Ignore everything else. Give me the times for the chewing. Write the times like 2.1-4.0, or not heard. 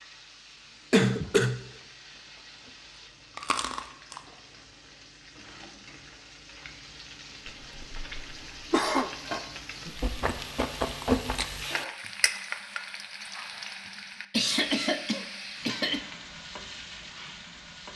3.4-4.2, 10.0-11.7.